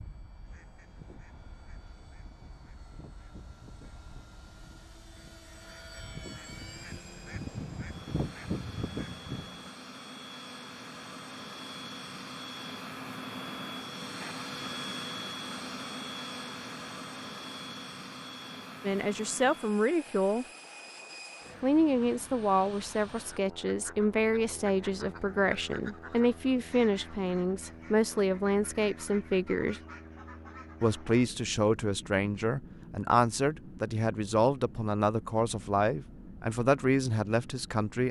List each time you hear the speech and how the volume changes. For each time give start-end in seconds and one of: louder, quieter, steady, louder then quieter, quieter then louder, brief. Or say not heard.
18.8-20.4 brief
21.6-29.8 steady
30.8-38.0 steady.